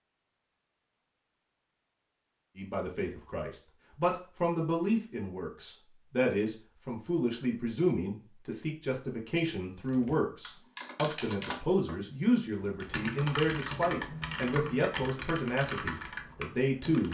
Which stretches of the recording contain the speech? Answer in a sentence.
You can hear the speech from 2.5 to 17.0 s.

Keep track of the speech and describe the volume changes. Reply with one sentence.
The volume of the speech stays about the same.